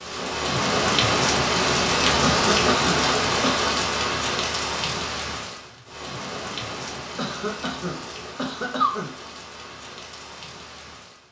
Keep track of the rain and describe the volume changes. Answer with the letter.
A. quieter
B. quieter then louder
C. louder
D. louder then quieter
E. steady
A.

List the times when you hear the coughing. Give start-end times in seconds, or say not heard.
2.2-3.7, 7.2-9.2.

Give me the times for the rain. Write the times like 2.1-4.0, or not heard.
0.0-11.2.